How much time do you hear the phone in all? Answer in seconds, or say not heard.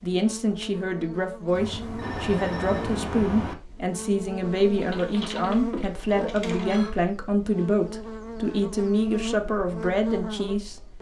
3 s.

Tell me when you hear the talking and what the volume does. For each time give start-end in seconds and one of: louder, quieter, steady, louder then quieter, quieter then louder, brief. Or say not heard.
0.0-10.8 steady.